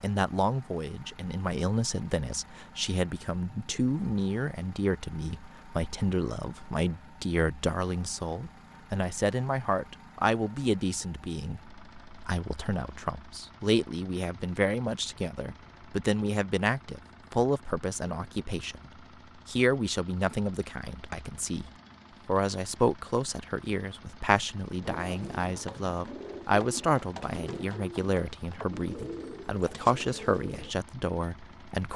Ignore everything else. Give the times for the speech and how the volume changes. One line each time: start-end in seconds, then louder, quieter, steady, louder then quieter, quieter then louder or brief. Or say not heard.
0.0-31.9 steady.